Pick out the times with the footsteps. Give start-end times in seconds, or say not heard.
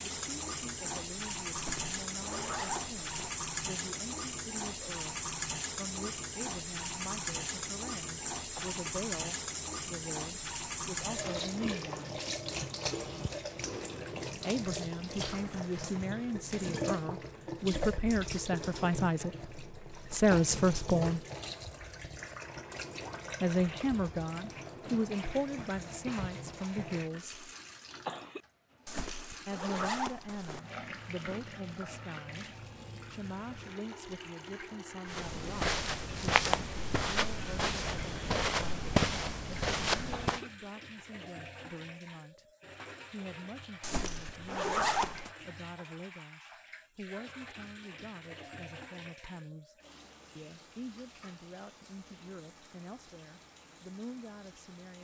35.0-40.4.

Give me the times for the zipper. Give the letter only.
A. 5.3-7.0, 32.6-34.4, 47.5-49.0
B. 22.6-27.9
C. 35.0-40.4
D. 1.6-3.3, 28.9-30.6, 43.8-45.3
D.